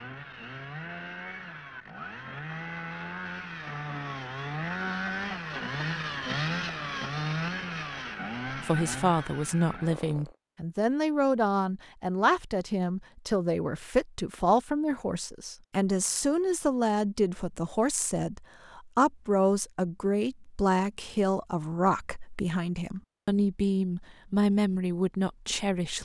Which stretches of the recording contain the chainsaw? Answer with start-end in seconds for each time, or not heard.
0.0-10.3.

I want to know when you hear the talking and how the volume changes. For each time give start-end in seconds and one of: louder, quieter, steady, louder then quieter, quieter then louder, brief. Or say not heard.
8.5-26.0 steady.